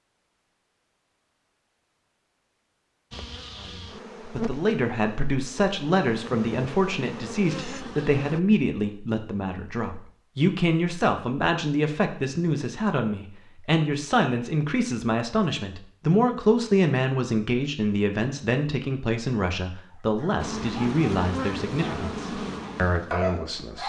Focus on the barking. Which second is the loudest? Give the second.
23 s.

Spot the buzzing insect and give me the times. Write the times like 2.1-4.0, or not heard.
3.1-8.4, 20.4-23.8.